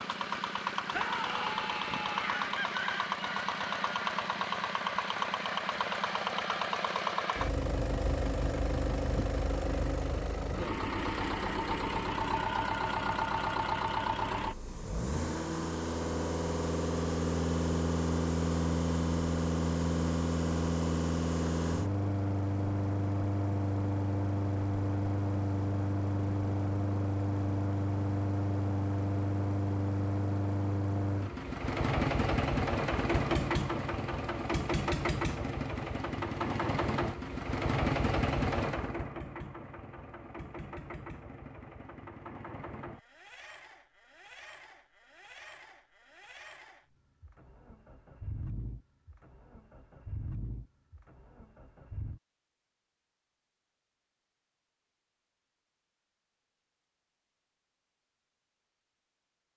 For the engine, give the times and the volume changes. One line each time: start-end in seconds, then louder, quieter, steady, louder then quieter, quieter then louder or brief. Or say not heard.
0.0-52.2 quieter.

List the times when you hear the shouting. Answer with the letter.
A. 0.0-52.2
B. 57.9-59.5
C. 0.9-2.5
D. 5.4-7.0
C.